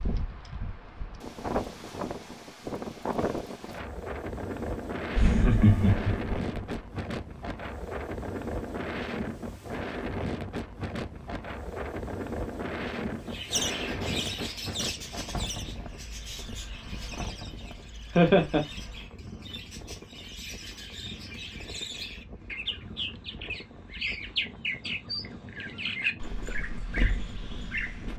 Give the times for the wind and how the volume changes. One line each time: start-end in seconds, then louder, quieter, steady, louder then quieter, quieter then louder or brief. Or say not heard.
0.0-28.1 quieter.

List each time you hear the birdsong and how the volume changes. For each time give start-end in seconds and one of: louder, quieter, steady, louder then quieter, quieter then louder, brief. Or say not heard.
13.2-28.1 quieter then louder.